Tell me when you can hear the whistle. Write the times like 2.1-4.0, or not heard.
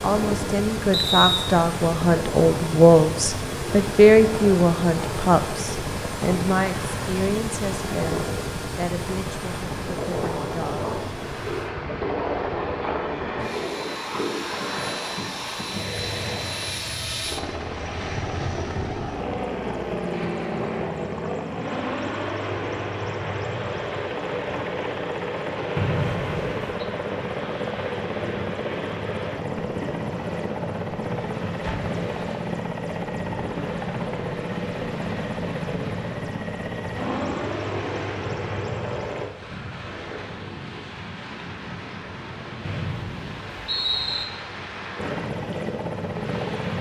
0.9-1.5, 25.8-26.8, 42.6-44.2.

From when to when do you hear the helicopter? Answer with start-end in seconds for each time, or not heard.
0.0-39.3, 45.0-46.7.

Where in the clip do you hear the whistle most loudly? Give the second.
1 s.